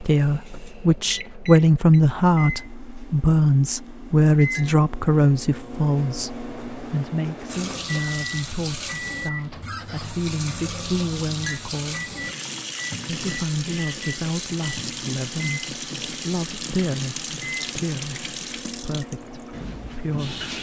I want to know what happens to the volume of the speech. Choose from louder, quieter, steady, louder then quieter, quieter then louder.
quieter.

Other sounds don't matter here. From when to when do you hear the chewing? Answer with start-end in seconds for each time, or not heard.
not heard.